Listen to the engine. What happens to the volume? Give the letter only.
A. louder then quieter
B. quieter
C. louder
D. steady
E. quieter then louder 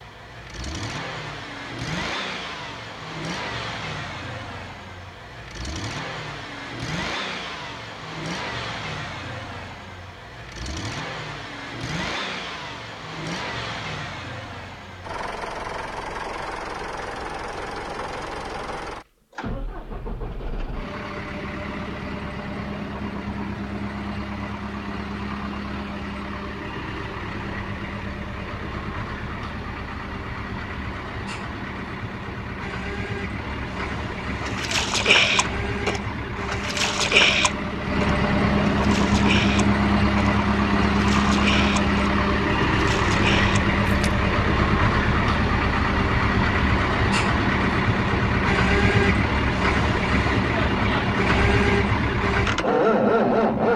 C.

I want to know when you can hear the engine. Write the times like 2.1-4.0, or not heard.
0.0-53.7.